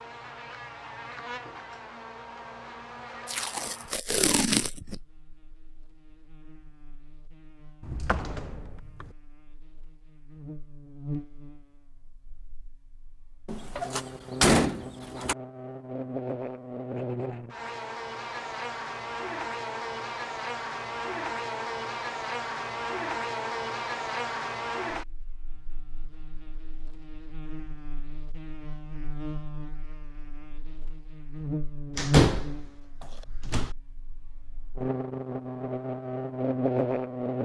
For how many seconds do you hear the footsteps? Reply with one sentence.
You can't hear the footsteps here.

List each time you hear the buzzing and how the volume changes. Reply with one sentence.
The buzzing can be heard from 0.0 to 37.4 s, getting louder.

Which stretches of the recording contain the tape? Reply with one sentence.
You can hear the tape from 3.2 to 5.0 s.